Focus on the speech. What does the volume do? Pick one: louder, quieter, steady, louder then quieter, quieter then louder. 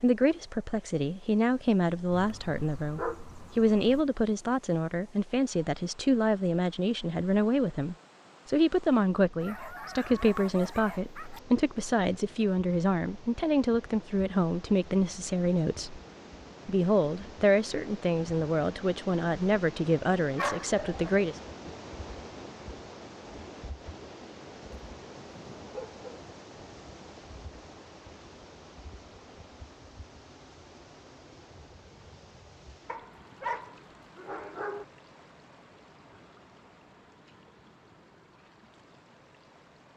steady.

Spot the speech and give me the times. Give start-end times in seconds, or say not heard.
0.0-16.0, 16.6-21.4.